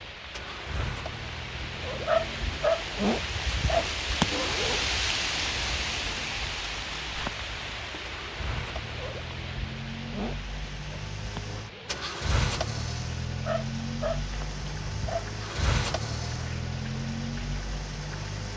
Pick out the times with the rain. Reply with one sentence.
You can hear the rain from 0.0 to 18.5 s.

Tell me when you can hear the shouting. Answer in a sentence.
The shouting can't be heard in this clip.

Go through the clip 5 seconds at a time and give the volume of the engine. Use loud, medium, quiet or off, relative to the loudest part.
medium, medium, loud, loud.